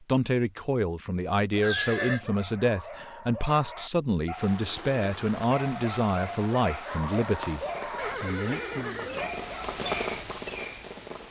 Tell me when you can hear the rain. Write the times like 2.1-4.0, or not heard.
4.3-11.2.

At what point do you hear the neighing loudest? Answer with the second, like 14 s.
2 s.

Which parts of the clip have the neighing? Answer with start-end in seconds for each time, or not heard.
1.6-2.2, 8.0-9.3.